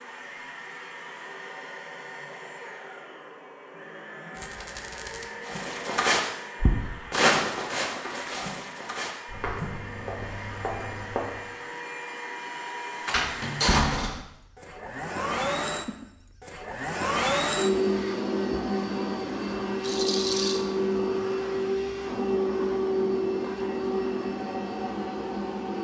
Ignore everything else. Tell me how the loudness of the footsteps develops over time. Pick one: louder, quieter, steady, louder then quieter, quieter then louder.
quieter.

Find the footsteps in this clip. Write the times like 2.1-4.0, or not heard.
5.5-11.6.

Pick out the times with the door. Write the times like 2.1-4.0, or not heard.
13.1-14.2.